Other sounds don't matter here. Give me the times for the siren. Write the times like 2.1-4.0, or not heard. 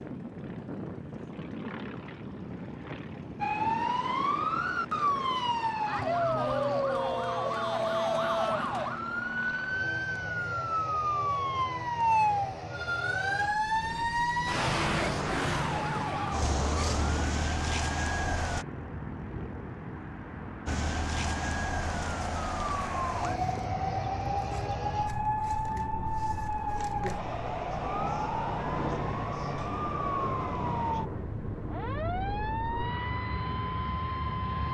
3.4-18.6, 20.6-34.6.